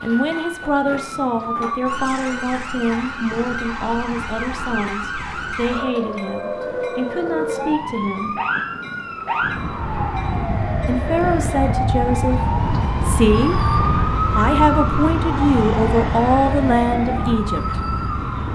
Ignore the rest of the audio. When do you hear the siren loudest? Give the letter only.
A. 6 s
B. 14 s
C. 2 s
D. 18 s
B.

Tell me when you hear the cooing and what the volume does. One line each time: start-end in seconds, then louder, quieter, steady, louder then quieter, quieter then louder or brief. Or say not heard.
not heard.